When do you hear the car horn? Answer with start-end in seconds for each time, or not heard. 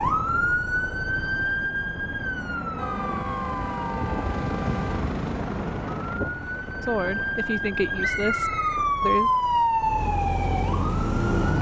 2.8-5.2.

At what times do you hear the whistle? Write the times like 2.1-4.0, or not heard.
8.0-8.8.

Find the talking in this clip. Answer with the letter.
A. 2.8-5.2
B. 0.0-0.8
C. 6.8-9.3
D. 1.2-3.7
C.